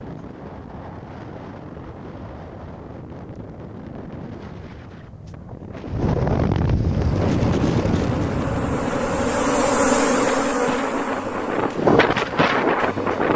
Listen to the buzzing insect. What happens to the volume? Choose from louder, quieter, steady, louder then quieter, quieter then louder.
louder then quieter.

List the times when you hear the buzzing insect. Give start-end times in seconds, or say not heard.
6.8-13.3.